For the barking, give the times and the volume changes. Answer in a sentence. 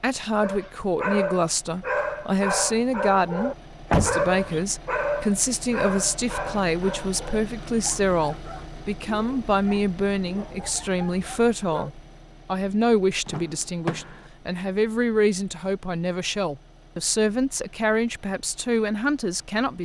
You can hear the barking from 0.4 to 11.9 s, getting quieter.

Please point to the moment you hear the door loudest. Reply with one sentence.
The loudest moment of the door is at 4 seconds.